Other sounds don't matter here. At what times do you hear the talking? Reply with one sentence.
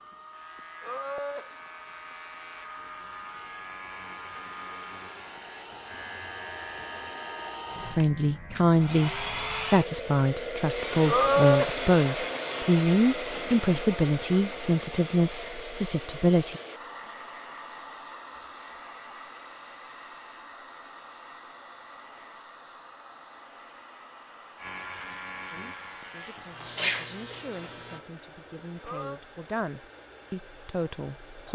The talking can be heard from 7.9 to 16.6 s and from 25.5 to 31.4 s.